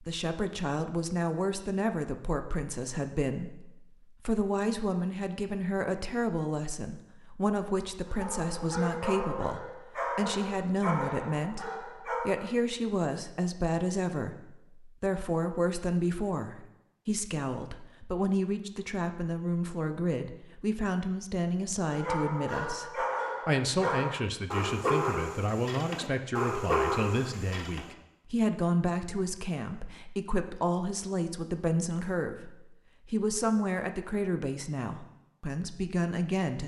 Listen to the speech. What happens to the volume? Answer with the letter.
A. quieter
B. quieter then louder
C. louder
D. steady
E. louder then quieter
D.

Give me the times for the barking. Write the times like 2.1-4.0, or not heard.
8.1-12.6, 21.9-27.9.